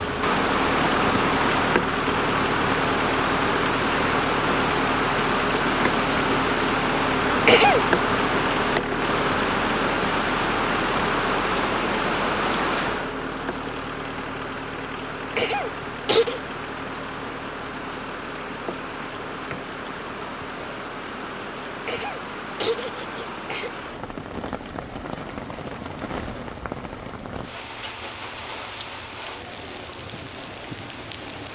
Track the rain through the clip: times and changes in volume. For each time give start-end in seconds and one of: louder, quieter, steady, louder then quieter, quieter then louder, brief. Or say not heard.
0.0-31.5 quieter.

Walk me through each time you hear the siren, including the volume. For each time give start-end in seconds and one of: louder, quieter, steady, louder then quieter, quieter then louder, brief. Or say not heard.
not heard.